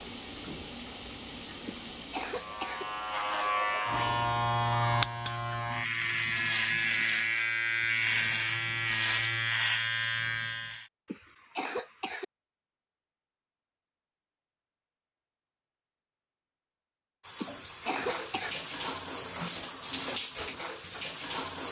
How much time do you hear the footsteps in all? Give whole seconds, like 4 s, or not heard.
not heard.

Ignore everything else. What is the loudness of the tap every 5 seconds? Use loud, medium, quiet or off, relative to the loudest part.
medium, off, off, loud, loud.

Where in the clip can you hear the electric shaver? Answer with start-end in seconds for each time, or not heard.
2.3-10.8.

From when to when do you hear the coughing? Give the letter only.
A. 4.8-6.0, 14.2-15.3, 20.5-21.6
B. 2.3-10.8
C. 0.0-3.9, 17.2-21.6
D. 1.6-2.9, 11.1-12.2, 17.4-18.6
D.